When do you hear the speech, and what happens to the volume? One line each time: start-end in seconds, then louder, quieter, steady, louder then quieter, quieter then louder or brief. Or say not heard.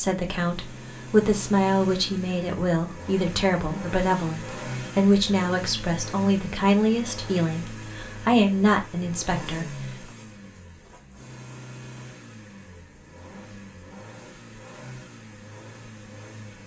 0.0-10.1 steady.